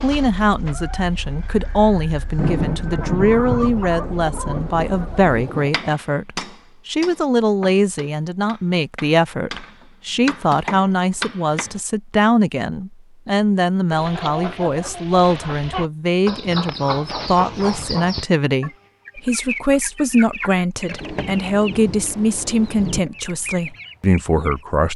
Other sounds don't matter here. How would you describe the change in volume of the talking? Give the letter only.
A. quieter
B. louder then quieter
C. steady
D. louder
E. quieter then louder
C.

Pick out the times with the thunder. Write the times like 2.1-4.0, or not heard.
2.4-5.7, 21.0-23.0.